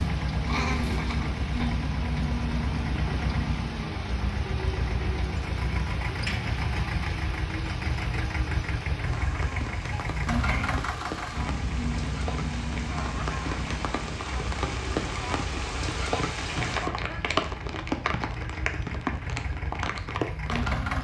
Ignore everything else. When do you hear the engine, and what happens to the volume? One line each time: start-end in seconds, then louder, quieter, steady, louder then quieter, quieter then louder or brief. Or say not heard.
0.0-20.9 quieter.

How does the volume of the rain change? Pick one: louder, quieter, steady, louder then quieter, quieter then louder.
louder.